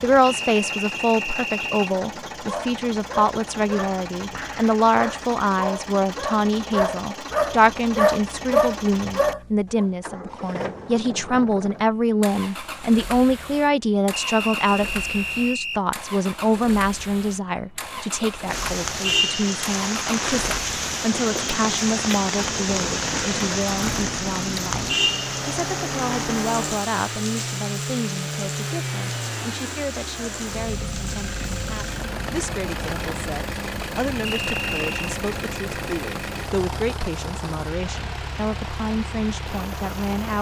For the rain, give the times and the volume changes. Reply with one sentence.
The rain can be heard from 18.4 to 40.3 s, getting quieter.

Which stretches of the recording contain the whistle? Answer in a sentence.
You can hear the whistle from 0.2 to 1.9 s, from 14.1 to 15.8 s and from 34.2 to 35.1 s.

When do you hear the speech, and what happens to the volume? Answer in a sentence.
You can hear the speech from 0.0 to 40.3 s, getting quieter.